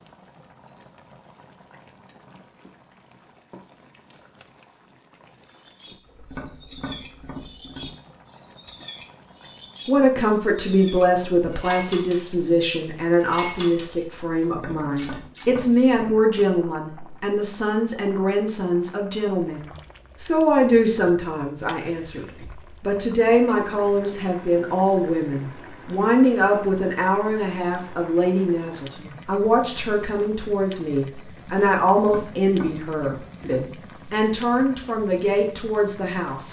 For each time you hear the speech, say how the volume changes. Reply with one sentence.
You can hear the speech from 9.8 to 36.4 s, at a steady volume.